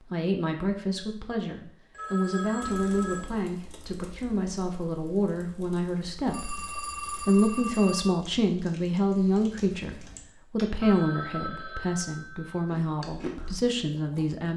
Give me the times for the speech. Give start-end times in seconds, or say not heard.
0.0-14.5.